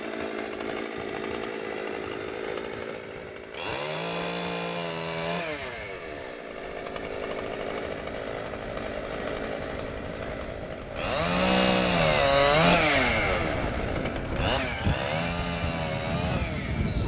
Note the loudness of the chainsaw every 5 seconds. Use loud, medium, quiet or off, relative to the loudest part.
medium, medium, loud, medium.